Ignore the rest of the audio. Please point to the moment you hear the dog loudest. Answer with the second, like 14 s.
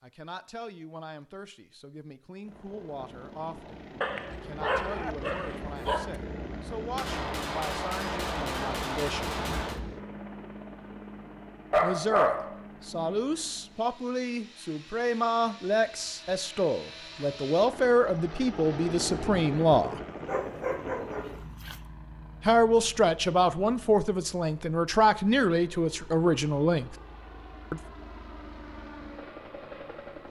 12 s.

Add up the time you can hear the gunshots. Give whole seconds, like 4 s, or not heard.
3 s.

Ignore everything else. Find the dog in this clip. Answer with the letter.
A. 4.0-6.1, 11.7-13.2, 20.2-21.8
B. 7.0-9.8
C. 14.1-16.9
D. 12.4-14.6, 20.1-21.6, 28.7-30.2
A.